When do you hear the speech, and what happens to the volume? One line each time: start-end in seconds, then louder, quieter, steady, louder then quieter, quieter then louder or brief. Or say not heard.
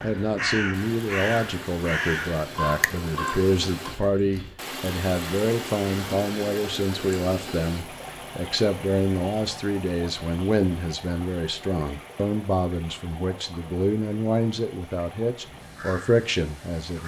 0.0-17.0 steady.